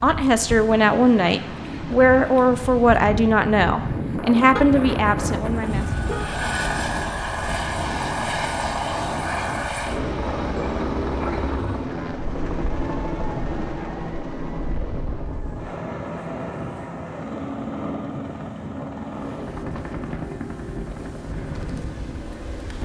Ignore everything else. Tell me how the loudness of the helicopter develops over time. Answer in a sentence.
The volume of the helicopter goes down.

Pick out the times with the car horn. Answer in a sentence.
You can hear the car horn from 4.5 to 6.3 s.